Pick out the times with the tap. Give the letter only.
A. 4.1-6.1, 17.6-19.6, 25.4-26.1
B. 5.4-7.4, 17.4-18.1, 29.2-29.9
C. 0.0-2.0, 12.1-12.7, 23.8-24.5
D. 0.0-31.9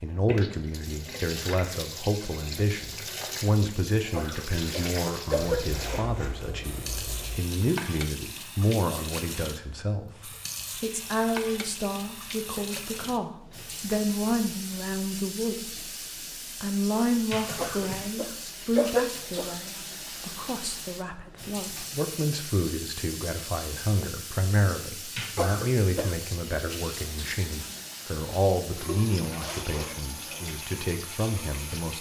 D.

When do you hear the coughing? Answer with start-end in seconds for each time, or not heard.
4.1-6.1, 17.6-19.6, 25.4-26.1.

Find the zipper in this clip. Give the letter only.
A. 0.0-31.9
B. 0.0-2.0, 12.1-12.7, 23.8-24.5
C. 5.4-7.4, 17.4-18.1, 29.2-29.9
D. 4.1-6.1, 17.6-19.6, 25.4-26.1
C.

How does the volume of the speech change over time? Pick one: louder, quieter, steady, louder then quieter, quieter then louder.
steady.